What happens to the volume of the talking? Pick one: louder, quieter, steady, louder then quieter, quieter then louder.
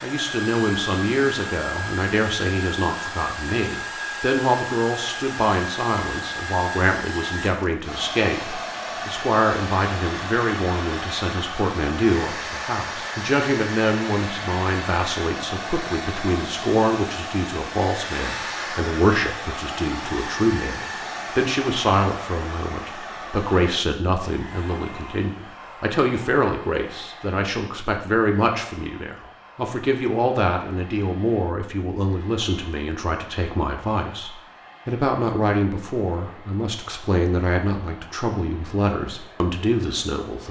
steady.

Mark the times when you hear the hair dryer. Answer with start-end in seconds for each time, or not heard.
0.0-40.4.